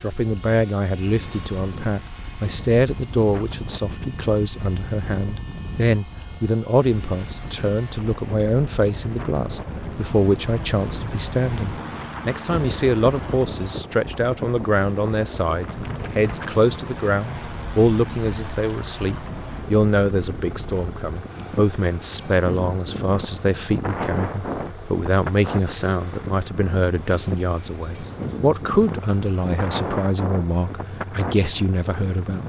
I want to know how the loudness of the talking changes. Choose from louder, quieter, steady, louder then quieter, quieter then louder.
steady.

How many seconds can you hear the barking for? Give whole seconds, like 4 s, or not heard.
not heard.